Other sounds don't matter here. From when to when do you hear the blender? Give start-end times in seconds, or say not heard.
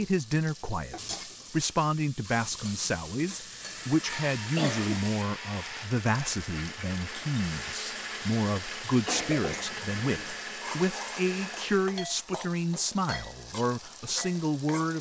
3.3-12.0.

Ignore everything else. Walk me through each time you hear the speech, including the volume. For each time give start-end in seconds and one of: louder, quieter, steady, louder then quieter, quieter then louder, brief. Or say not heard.
0.0-14.9 steady.